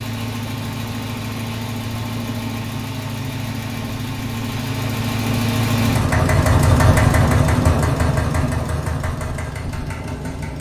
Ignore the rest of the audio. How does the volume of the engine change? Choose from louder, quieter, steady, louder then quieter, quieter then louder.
louder then quieter.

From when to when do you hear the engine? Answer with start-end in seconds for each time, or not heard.
0.0-10.5.